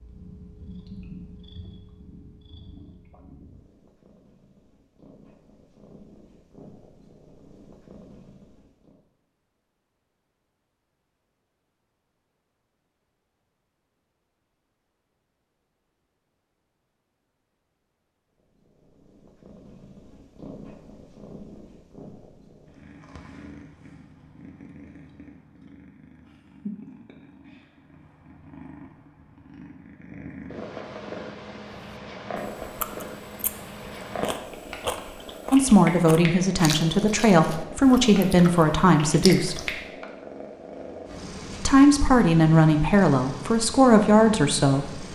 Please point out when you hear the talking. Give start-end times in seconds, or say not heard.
35.5-39.6, 41.6-45.0.